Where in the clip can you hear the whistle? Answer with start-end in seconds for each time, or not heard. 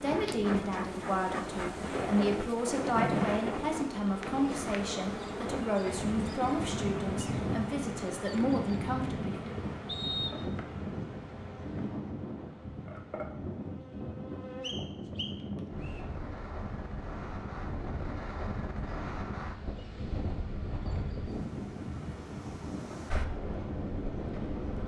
9.8-10.5, 14.6-16.0.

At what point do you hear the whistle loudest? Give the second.
10 s.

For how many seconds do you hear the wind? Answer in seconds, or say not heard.
25 s.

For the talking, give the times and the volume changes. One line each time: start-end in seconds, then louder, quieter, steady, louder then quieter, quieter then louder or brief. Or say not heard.
0.0-9.6 steady.